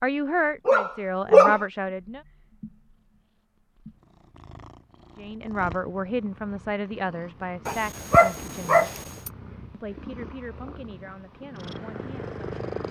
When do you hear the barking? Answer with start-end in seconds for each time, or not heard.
0.7-1.6, 7.7-9.3.